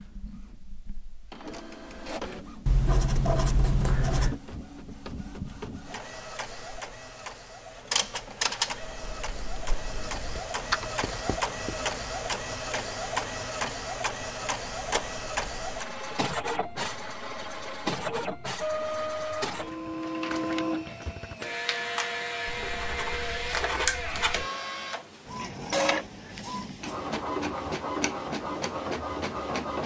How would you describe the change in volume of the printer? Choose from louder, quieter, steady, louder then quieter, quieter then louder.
louder.